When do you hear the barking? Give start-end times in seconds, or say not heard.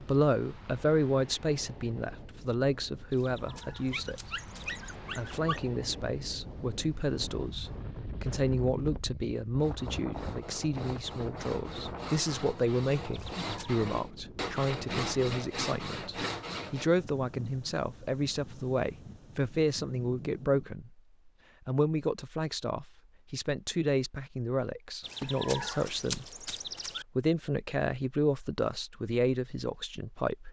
3.9-5.7.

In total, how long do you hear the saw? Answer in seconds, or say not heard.
7 s.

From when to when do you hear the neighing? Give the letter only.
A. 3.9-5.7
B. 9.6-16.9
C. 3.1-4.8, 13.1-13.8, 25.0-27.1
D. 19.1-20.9
C.